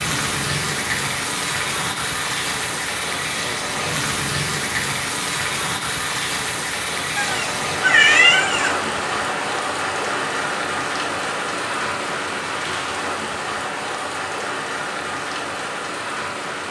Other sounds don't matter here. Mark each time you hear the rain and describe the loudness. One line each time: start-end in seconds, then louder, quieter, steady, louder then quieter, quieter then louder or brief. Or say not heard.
0.0-16.6 steady.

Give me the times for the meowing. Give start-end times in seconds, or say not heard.
7.2-8.8.